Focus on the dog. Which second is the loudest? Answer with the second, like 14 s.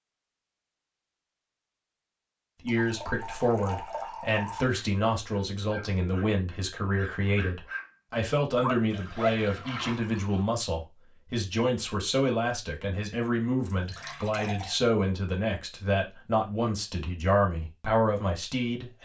9 s.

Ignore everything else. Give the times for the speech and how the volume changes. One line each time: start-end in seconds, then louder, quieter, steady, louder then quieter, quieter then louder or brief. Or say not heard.
2.6-18.9 steady.